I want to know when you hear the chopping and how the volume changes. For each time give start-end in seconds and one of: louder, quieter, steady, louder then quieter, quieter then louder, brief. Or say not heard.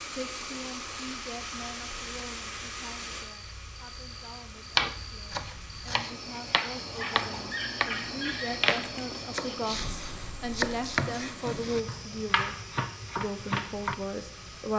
4.8-13.9 steady.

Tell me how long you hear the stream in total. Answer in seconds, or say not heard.
15 s.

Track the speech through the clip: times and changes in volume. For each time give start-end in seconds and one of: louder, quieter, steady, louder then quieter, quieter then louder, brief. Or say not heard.
0.0-12.6 quieter then louder
13.2-14.7 brief.